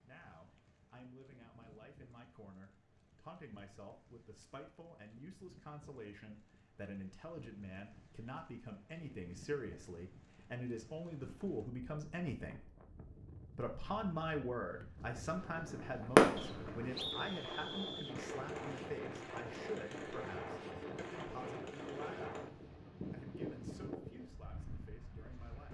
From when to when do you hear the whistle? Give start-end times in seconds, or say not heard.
16.4-18.1.